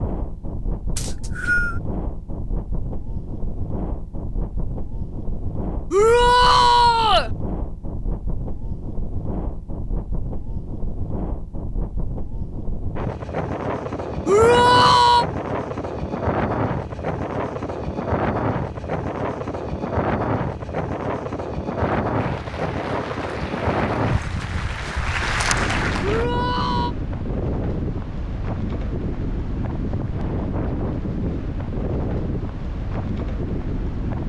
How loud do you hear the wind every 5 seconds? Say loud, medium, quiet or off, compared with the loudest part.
medium, medium, loud, loud, loud, loud, loud.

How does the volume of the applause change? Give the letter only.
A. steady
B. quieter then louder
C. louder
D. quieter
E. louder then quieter
C.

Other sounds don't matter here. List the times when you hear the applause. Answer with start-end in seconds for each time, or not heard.
21.8-26.3.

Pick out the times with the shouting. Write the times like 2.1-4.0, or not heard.
5.9-7.3, 14.2-15.2, 26.0-26.9.